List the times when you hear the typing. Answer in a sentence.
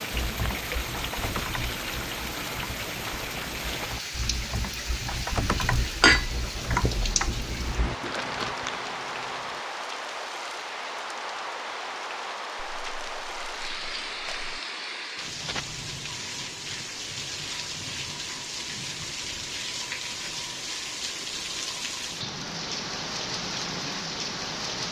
The typing can be heard from 0.1 to 8.0 s.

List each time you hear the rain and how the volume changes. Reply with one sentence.
The rain can be heard from 0.0 to 24.8 s, at a steady volume.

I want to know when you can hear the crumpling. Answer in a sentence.
The crumpling can be heard from 7.9 to 9.6 s and from 12.7 to 14.6 s.